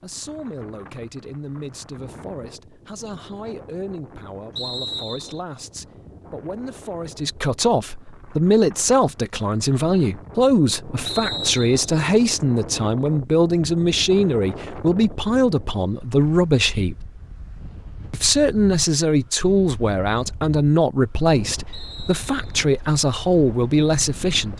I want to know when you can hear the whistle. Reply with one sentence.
The whistle can be heard from 4.5 to 5.4 s, from 11.1 to 11.8 s and from 21.7 to 22.4 s.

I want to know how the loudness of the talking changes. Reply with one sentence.
The loudness of the talking goes up.